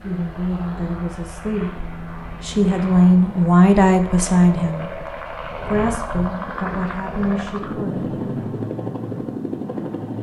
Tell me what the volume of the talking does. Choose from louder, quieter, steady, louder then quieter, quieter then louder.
louder then quieter.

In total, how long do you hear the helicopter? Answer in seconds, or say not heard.
10 s.